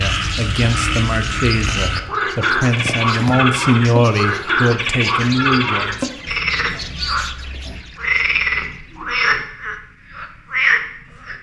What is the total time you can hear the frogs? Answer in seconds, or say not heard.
11 s.